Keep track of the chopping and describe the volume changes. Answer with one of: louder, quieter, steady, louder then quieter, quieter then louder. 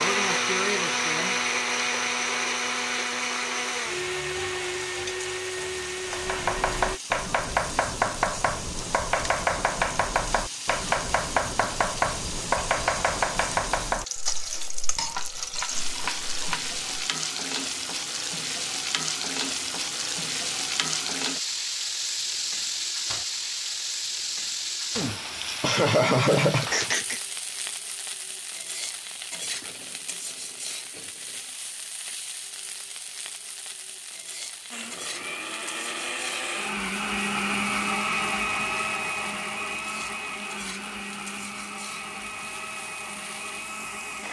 quieter.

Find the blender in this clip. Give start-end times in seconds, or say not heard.
0.0-7.0, 34.7-44.2.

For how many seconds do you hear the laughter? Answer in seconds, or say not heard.
2 s.